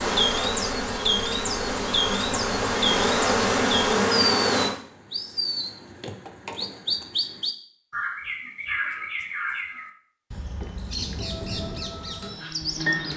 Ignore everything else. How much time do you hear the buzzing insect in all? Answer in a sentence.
The buzzing insect can be heard for 7 seconds in total.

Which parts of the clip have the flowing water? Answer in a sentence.
The flowing water can't be heard in this clip.